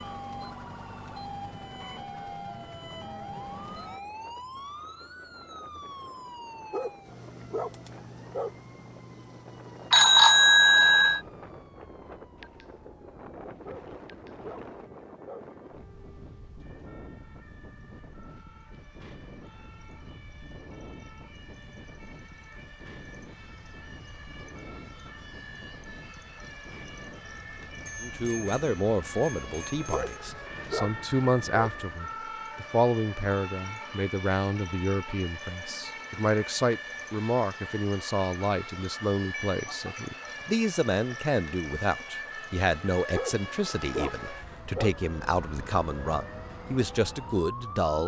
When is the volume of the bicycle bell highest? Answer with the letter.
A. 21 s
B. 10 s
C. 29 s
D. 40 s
B.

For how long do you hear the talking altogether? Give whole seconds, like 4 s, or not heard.
20 s.